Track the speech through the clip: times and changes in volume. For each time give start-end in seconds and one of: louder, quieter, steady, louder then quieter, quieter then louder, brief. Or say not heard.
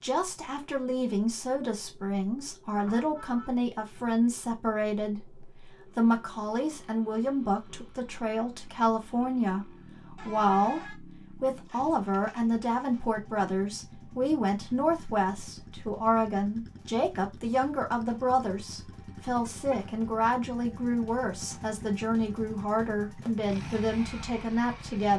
0.0-25.1 steady.